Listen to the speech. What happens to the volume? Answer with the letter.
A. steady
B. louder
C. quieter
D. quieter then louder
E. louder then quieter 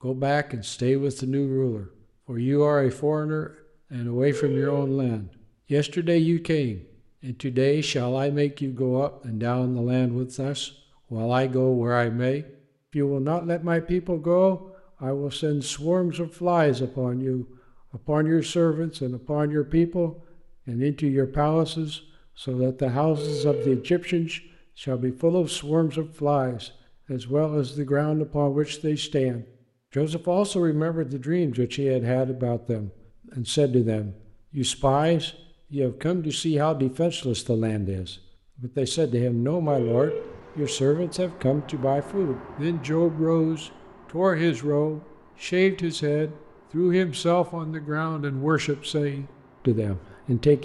A.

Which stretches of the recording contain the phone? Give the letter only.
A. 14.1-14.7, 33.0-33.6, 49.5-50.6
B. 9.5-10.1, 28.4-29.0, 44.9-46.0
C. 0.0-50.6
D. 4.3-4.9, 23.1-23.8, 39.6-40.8
D.